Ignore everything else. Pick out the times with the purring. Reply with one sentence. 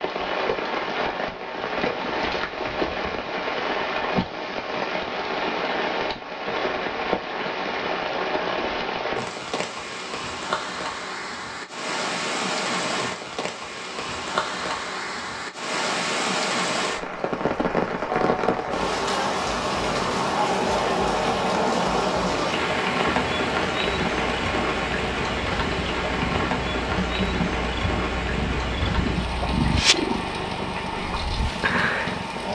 The purring can be heard from 23.8 to 32.5 s.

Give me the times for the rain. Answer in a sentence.
The rain can be heard from 0.0 to 32.5 s.